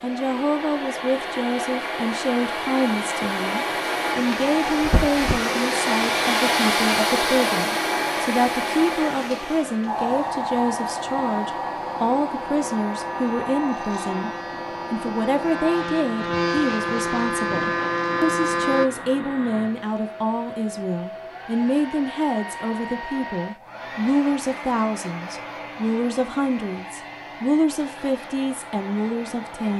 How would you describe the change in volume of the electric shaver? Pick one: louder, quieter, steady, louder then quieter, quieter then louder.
louder.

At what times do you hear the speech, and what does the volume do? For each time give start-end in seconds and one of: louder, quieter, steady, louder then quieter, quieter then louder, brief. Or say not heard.
0.0-29.7 steady.